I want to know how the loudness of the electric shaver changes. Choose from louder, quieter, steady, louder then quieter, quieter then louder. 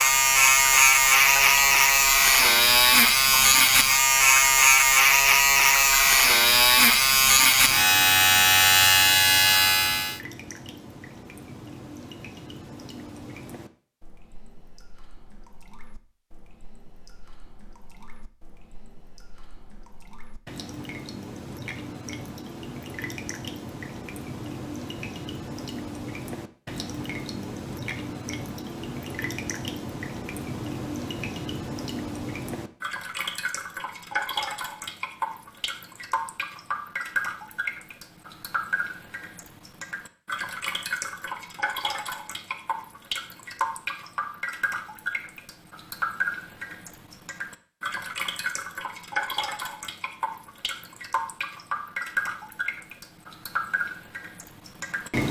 steady.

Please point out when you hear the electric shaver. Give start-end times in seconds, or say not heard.
0.0-10.2.